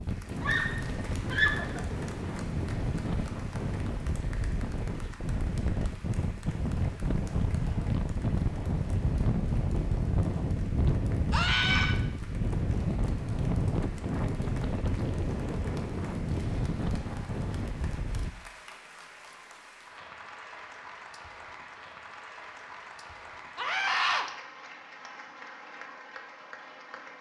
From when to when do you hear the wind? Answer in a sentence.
The wind can be heard from 0.0 to 18.3 s.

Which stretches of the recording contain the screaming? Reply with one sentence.
The screaming can be heard from 0.3 to 1.9 s, from 11.3 to 11.9 s and from 23.6 to 24.2 s.